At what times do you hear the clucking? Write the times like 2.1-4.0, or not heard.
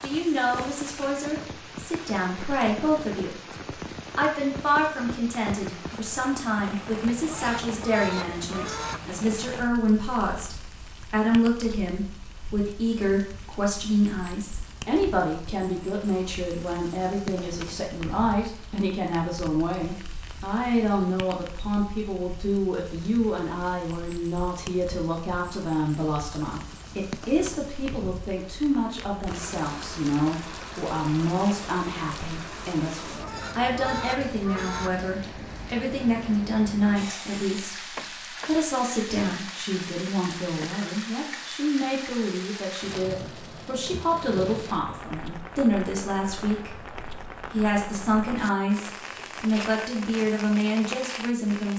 7.2-9.1, 33.2-35.0.